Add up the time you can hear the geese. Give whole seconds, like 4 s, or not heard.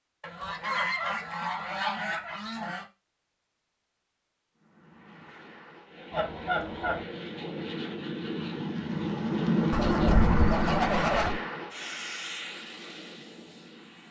5 s.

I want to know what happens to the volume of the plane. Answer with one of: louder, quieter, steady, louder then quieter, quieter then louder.
louder then quieter.